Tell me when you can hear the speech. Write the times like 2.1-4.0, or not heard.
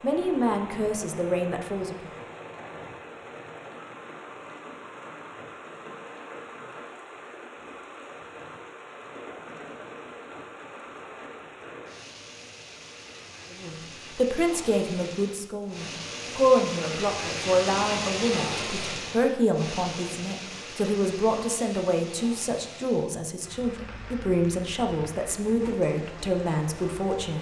0.0-2.1, 13.5-27.3.